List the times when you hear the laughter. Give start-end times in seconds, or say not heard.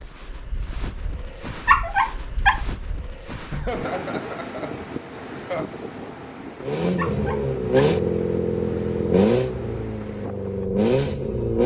3.5-5.7.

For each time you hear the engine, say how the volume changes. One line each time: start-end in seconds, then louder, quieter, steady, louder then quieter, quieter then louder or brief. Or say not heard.
6.6-11.6 quieter then louder.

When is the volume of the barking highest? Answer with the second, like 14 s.
2 s.